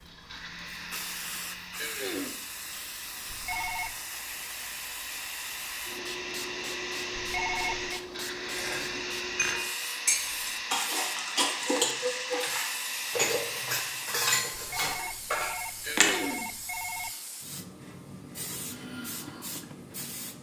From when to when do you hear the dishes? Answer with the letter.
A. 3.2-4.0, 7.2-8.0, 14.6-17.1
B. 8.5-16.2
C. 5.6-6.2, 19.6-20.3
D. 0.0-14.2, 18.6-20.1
B.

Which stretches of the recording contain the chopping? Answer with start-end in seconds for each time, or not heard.
not heard.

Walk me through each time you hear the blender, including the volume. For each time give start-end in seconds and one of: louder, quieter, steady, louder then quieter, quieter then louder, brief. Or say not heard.
0.0-14.2 louder
18.6-20.1 brief.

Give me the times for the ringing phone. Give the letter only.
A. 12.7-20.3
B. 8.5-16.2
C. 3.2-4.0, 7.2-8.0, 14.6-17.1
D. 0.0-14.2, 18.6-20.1
C.